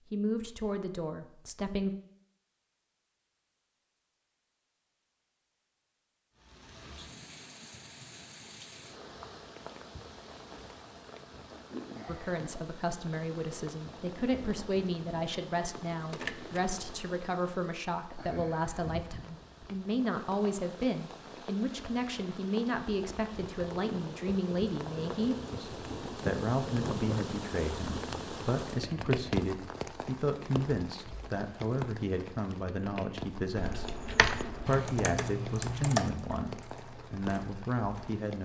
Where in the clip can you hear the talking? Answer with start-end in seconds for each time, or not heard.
0.1-1.9, 12.1-38.4.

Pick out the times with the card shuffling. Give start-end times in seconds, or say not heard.
16.1-17.1, 33.5-34.8.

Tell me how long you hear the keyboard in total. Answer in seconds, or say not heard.
4 s.